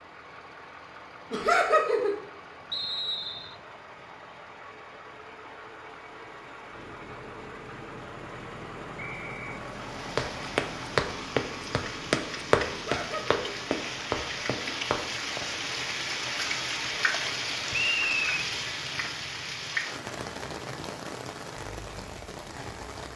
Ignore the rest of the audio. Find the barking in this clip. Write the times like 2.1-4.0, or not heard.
not heard.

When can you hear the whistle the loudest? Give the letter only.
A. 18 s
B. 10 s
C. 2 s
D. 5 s
A.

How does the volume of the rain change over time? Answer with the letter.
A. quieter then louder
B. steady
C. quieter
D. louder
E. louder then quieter
E.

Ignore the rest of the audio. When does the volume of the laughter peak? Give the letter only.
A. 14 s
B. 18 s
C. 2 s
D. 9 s
C.